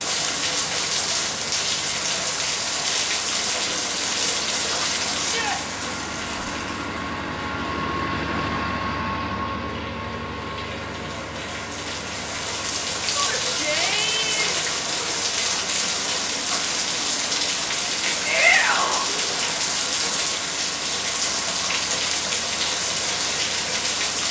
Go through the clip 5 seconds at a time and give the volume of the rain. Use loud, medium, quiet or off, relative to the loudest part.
loud, medium, loud, loud, loud.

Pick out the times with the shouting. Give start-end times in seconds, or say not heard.
5.2-5.6, 13.2-14.6, 18.2-19.1.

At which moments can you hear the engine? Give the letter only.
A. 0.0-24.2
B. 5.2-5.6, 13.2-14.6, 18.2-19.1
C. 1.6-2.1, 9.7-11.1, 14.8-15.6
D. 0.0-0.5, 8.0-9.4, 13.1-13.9
A.